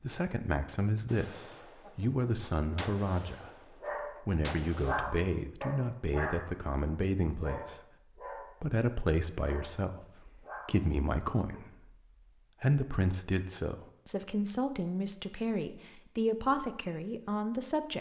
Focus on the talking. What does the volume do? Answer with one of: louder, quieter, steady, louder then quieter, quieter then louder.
steady.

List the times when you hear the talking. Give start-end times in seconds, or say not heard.
0.0-7.8, 8.5-11.9, 12.6-17.9.